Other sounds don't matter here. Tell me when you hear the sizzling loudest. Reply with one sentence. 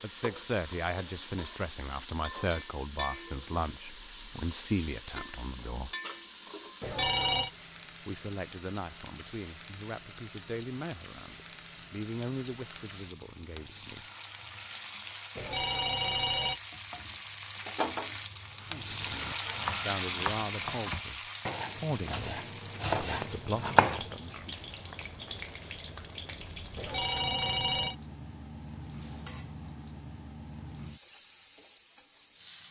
The volume of the sizzling peaks at 20 seconds.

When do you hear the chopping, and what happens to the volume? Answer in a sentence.
You can hear the chopping from 18.6 to 24.4 s, getting louder.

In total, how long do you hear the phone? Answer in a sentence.
The phone can be heard for 3 seconds in total.